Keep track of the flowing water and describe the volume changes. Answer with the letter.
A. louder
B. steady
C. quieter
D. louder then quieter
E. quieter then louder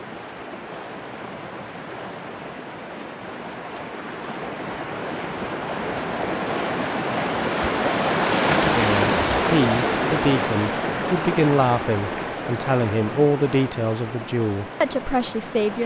D.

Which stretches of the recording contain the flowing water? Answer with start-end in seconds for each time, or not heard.
0.0-15.8.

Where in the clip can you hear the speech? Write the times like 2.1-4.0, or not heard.
8.7-15.8.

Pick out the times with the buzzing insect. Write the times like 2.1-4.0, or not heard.
not heard.